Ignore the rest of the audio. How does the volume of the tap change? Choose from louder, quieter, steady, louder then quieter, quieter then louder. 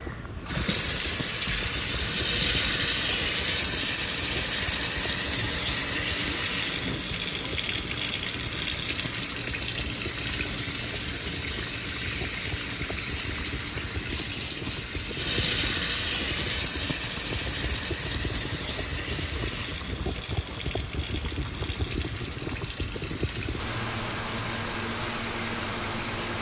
quieter.